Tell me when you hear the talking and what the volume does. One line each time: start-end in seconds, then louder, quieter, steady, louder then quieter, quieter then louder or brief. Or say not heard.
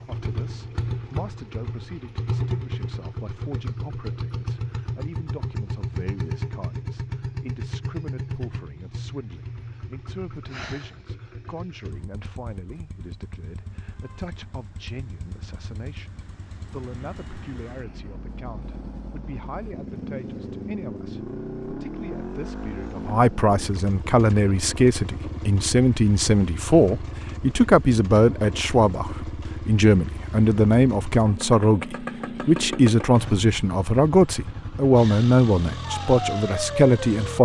0.0-37.4 louder.